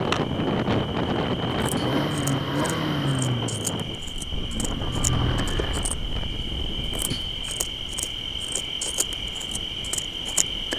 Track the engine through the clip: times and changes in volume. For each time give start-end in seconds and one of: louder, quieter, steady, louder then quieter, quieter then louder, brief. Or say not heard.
1.8-5.8 quieter then louder.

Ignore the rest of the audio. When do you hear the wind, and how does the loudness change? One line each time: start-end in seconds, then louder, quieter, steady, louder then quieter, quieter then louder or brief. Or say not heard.
0.0-10.7 quieter.